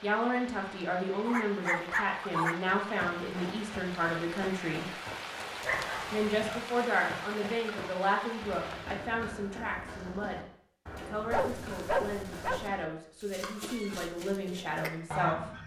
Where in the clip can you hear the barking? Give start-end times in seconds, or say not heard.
1.2-2.6, 5.6-6.6, 11.3-12.7.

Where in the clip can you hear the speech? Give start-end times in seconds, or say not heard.
0.0-4.9, 6.1-15.5.